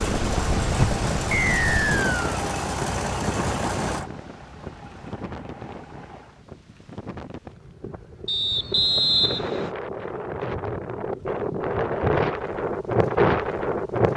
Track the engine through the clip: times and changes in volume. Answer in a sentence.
The engine can be heard from 0.0 to 6.5 s, getting quieter.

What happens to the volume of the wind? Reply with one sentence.
The loudness of the wind goes down, then up.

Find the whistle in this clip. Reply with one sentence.
The whistle can be heard from 1.3 to 2.4 s and from 8.2 to 9.7 s.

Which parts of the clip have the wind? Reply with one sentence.
You can hear the wind from 0.0 to 14.1 s.